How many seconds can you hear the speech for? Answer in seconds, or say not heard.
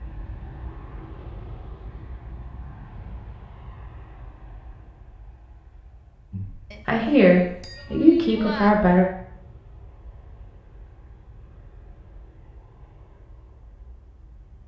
3 s.